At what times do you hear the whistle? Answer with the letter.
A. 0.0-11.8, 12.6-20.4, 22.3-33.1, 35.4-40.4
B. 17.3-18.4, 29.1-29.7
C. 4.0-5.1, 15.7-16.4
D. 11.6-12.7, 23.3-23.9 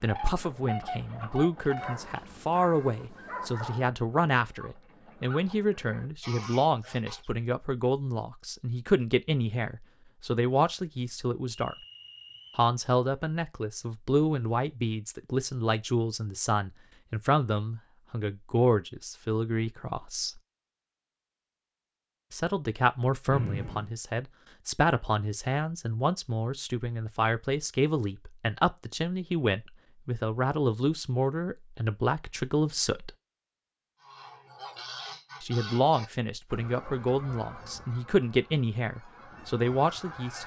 D.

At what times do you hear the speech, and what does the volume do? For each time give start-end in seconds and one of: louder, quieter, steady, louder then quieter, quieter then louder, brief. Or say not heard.
0.0-11.8 steady
12.6-20.4 steady
22.3-33.1 steady
35.4-40.4 steady.